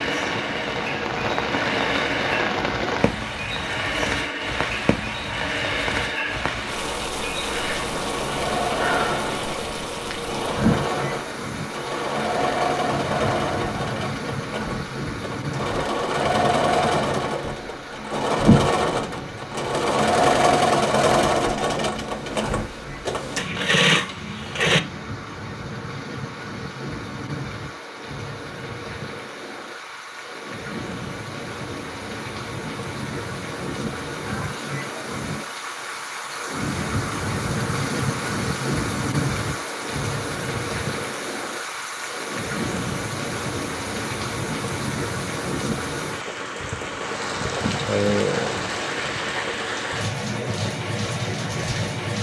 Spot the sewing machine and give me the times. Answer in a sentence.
You can hear the sewing machine from 0.0 to 24.8 s.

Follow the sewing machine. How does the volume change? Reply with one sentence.
The loudness of the sewing machine goes up.